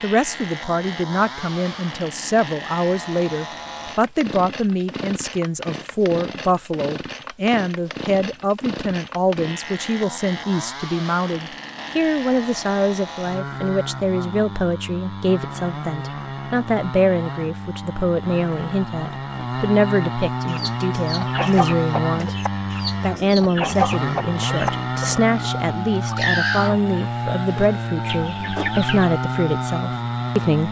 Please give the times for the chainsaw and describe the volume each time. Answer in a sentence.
The chainsaw can be heard from 0.0 to 30.6 s, getting louder.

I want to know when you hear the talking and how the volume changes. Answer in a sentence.
The talking can be heard from 0.0 to 22.4 s, at a steady volume; and from 23.0 to 30.6 s, at a steady volume.